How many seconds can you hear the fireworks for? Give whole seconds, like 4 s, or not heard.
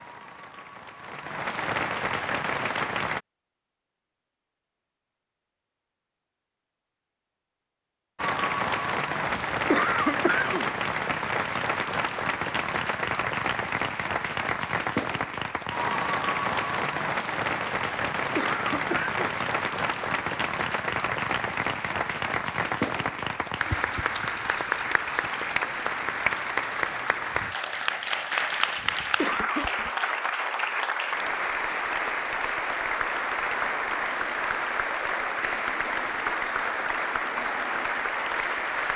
not heard.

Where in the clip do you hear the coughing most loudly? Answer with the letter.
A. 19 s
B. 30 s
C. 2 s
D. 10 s
D.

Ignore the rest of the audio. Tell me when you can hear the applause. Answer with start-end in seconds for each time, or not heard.
0.0-3.2, 8.2-38.9.